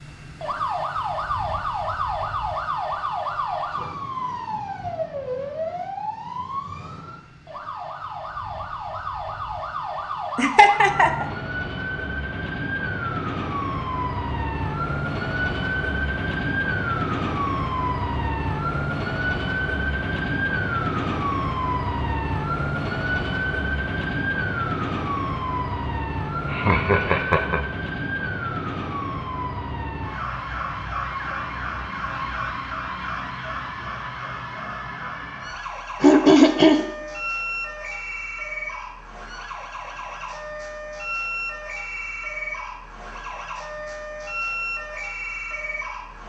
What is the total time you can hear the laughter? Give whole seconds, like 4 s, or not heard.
3 s.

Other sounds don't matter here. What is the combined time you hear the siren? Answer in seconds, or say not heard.
46 s.